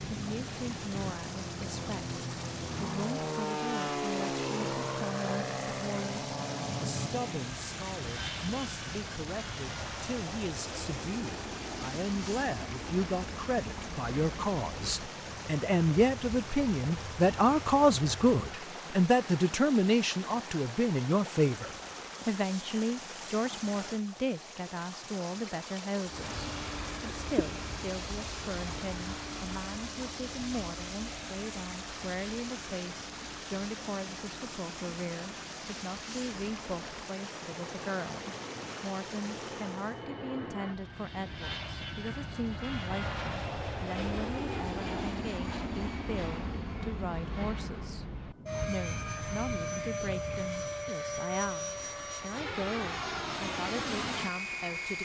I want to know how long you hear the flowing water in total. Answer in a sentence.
The flowing water can be heard for 40 seconds in total.